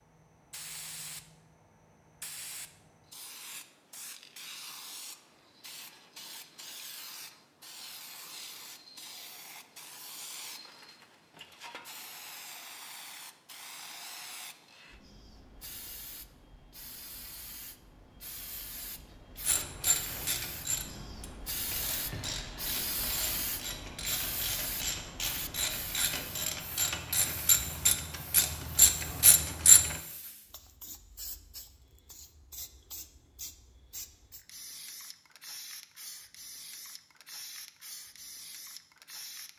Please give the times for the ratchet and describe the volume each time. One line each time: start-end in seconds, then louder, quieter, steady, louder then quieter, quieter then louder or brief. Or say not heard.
19.4-29.9 quieter then louder.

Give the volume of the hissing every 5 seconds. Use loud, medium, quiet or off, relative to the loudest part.
medium, medium, medium, medium, loud, medium, medium, medium.